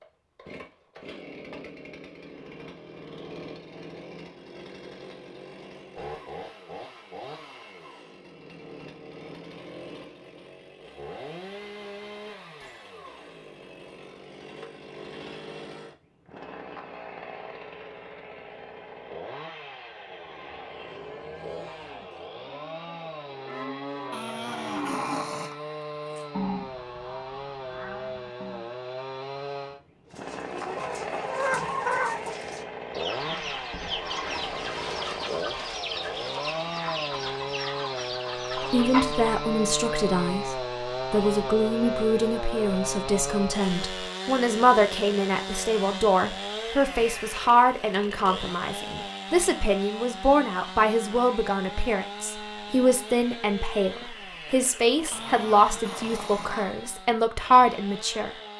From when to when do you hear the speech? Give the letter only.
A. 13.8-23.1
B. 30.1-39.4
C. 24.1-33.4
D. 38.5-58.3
D.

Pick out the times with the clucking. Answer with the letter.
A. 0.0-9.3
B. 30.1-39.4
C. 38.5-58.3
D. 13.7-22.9
B.